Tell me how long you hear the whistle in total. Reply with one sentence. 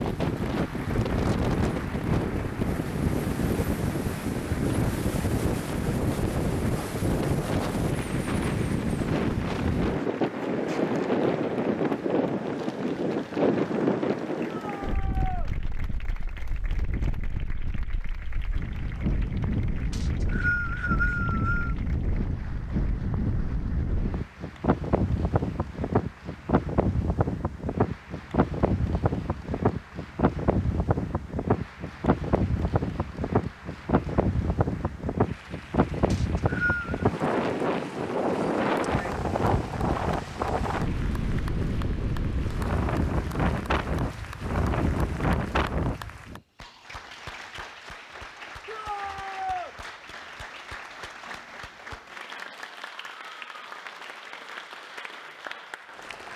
You can hear the whistle for 3 seconds altogether.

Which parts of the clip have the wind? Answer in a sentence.
The wind can be heard from 0.0 to 46.4 s.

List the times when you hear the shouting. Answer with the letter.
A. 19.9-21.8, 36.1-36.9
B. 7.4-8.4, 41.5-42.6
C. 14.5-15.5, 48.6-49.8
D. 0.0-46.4
C.